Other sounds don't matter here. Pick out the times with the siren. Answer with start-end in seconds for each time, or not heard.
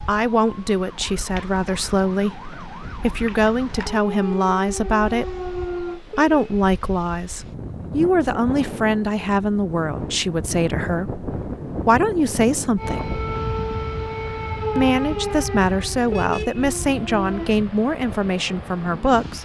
0.0-6.0, 12.8-17.6.